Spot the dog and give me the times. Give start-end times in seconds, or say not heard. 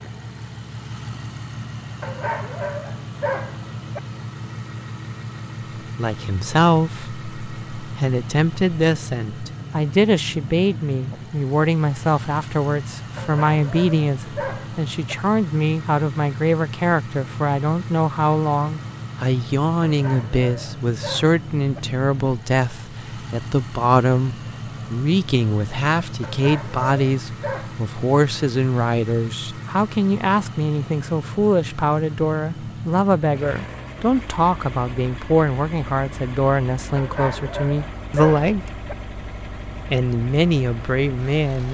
2.0-4.0, 13.2-15.2, 19.8-21.8, 26.2-27.8, 37.0-39.0.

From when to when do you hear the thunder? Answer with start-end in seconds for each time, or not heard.
not heard.